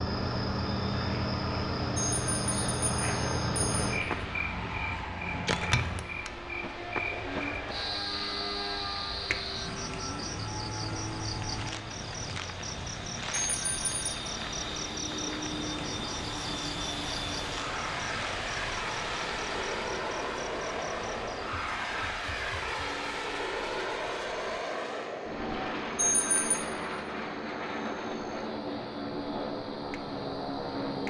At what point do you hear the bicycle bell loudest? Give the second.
26 s.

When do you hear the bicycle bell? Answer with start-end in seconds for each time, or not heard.
1.9-4.0, 13.5-14.2, 25.9-26.6.